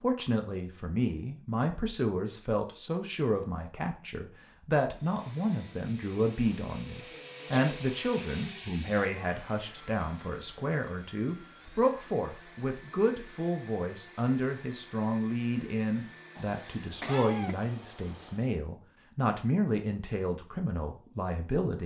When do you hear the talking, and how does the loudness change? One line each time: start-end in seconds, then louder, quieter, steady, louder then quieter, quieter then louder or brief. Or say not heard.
0.0-21.8 steady.